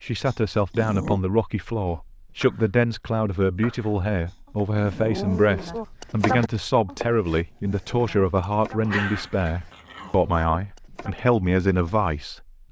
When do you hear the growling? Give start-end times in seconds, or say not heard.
0.2-1.2, 4.2-5.7, 8.8-10.4.